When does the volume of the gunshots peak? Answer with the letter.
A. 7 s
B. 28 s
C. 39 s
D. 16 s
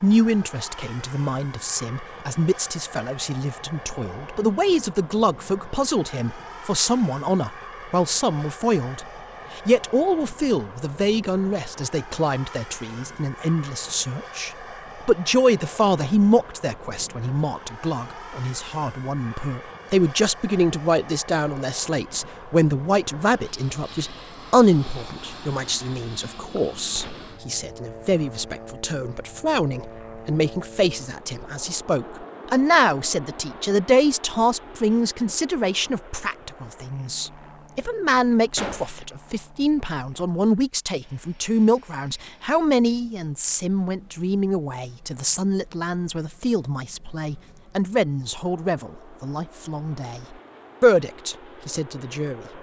C.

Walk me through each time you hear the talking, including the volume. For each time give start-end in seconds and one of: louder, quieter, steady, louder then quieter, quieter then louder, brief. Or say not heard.
0.0-52.5 steady.